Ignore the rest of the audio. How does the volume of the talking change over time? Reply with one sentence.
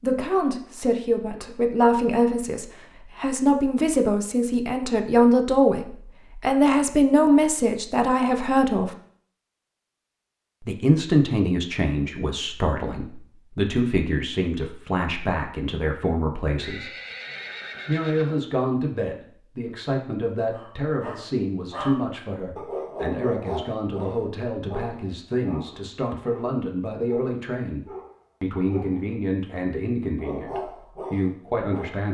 The loudness of the talking goes down.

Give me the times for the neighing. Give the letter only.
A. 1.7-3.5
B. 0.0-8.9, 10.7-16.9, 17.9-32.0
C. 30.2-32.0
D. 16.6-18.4
D.